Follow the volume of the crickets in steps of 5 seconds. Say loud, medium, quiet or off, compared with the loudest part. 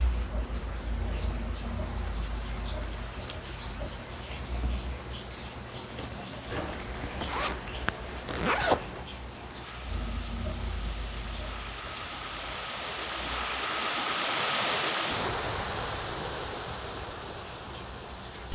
loud, loud, medium, loud.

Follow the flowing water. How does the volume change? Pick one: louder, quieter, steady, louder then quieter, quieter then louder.
louder.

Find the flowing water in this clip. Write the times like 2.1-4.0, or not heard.
0.0-18.4.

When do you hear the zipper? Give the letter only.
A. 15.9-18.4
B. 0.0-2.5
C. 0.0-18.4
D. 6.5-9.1
D.